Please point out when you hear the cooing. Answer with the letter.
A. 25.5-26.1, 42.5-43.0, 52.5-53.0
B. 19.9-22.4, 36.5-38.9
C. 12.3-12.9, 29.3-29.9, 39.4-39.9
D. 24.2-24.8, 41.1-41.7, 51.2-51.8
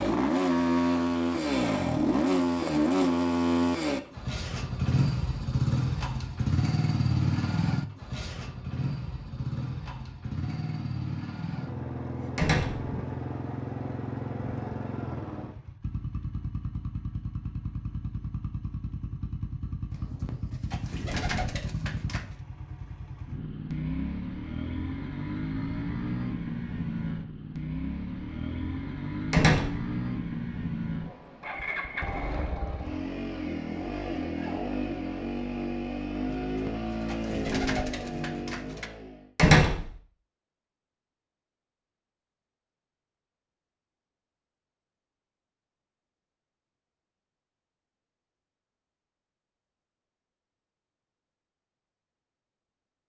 B.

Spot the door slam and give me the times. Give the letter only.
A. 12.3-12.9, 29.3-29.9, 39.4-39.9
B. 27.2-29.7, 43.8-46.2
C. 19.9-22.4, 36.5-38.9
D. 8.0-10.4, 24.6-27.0
A.